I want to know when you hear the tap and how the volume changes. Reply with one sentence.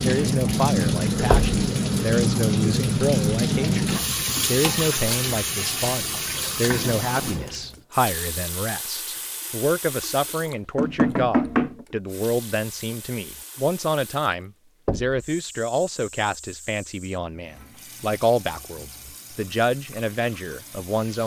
The tap can be heard from 0.0 to 21.2 s, getting quieter.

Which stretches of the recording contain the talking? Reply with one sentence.
The talking can be heard from 0.0 to 21.2 s.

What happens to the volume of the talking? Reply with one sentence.
The volume of the talking stays about the same.